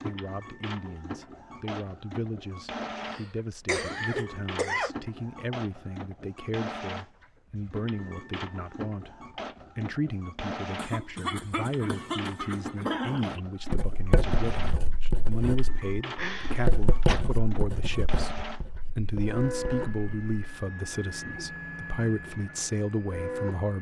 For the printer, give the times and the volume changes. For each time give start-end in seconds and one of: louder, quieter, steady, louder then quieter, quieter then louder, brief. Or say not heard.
0.0-23.7 steady.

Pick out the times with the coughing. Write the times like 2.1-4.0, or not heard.
3.0-5.0, 10.8-13.4, 16.1-17.2.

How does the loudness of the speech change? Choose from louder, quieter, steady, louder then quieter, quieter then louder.
louder.